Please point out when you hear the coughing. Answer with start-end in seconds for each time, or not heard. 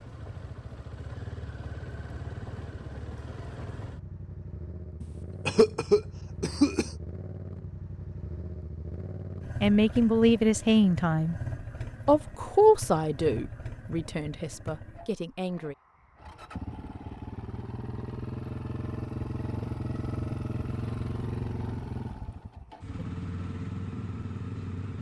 5.0-6.9.